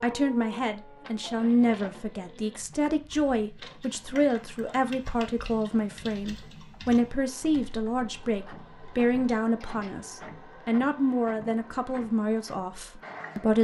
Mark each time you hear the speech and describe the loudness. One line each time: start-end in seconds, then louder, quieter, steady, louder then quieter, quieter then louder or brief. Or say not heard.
0.0-13.5 steady.